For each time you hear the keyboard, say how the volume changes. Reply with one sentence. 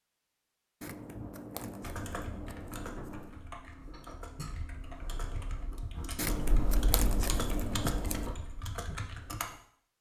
You can hear the keyboard from 1.8 to 9.6 s, getting louder.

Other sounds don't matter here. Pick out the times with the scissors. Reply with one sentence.
The scissors can be heard from 0.8 to 3.4 s and from 6.2 to 8.3 s.